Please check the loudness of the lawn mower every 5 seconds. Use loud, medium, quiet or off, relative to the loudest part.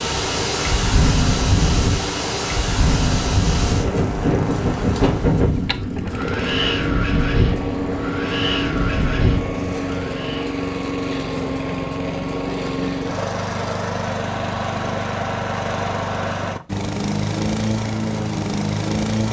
medium, loud, loud, loud.